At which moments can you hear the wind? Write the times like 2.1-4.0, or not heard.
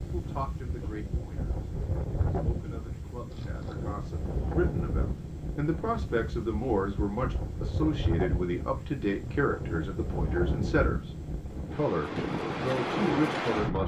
0.0-13.8.